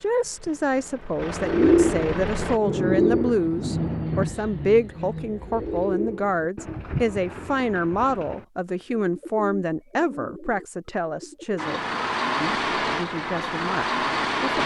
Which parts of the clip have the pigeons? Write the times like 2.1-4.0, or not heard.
1.4-11.6.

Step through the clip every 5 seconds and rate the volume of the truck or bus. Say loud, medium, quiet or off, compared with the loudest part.
medium, off, loud.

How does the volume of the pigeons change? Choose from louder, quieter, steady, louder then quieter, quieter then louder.
quieter.